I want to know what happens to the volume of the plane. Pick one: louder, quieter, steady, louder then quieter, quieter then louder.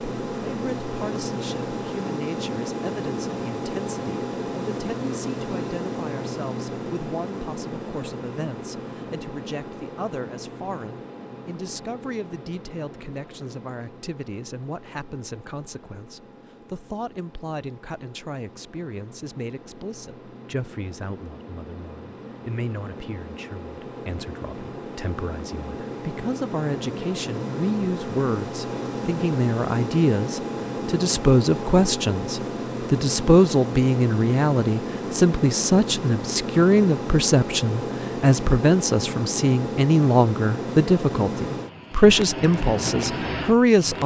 quieter then louder.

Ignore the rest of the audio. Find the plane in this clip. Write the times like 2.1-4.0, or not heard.
0.0-44.0.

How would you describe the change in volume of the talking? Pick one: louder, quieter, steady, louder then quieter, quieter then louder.
louder.